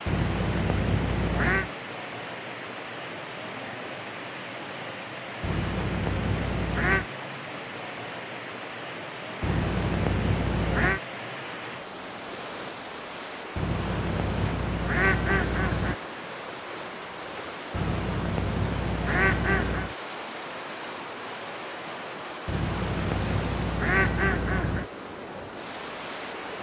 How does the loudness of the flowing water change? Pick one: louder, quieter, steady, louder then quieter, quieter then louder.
steady.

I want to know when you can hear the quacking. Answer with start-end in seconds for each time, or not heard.
0.1-1.7, 5.4-7.0, 9.4-11.0, 13.6-15.9, 17.7-19.9, 22.4-24.9.